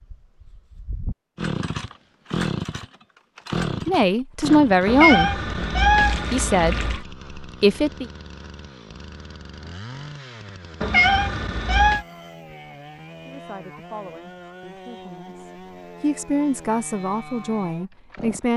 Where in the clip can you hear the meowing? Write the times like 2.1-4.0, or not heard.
4.8-7.0, 10.8-12.1.